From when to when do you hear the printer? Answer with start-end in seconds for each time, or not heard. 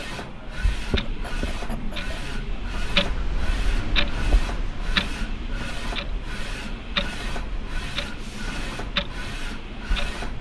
0.0-10.3.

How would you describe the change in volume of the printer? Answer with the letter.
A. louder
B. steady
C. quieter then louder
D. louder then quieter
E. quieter
B.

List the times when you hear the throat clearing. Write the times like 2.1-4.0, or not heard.
1.1-2.2.